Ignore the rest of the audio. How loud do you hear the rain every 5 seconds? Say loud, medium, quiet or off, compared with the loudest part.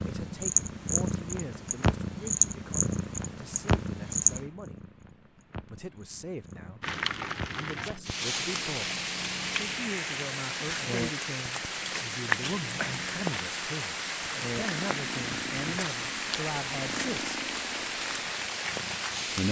off, loud, loud, loud.